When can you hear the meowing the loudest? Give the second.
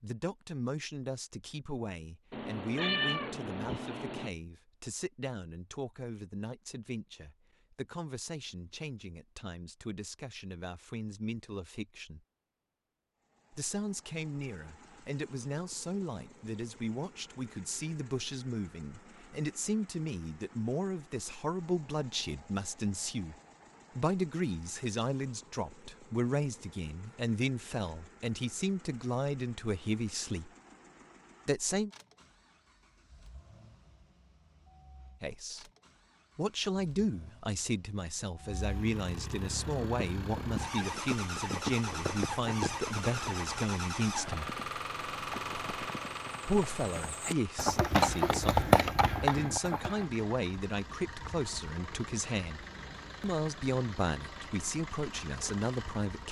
3 s.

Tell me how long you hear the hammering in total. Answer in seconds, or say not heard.
not heard.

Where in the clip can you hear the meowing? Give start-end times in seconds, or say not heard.
2.3-4.3.